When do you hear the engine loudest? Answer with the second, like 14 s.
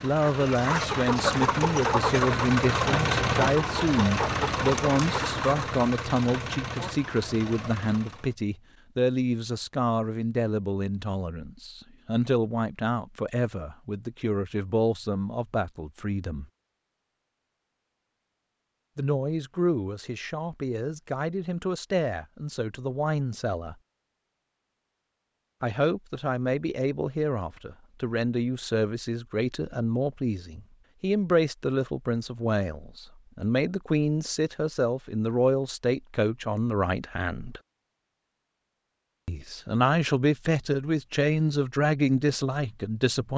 3 s.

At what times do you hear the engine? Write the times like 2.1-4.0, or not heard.
0.0-8.3.